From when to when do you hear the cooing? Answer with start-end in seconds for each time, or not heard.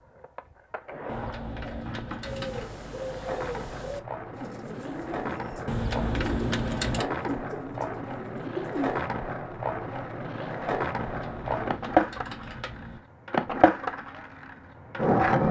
2.2-9.0.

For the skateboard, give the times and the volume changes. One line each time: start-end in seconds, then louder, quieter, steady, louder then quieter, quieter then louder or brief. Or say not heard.
0.0-15.4 louder.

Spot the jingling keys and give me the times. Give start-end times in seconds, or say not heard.
1.1-2.8, 5.7-7.0, 10.9-13.0.